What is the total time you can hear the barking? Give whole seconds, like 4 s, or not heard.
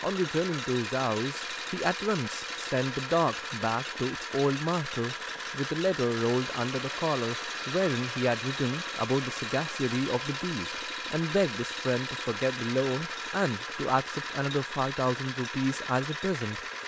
not heard.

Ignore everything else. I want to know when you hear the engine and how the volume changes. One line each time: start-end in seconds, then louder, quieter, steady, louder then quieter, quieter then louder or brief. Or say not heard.
0.0-16.8 steady.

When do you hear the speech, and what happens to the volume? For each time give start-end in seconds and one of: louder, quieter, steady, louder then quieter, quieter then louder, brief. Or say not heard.
0.0-16.6 steady.